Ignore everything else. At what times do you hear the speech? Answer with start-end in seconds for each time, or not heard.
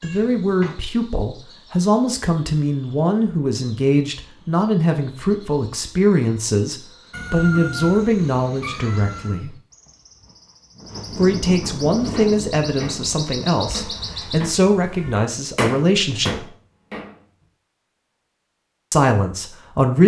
0.0-9.5, 11.2-16.4, 18.9-20.0.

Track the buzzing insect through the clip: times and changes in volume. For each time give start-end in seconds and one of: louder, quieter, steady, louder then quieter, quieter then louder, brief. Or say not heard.
not heard.